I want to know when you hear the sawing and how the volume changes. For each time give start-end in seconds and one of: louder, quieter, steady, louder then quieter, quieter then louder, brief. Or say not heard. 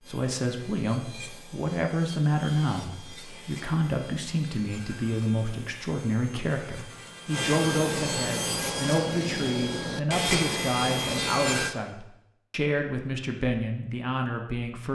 0.0-11.7 louder.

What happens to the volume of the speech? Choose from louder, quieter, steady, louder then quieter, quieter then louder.
steady.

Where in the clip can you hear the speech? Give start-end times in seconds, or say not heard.
0.1-14.9.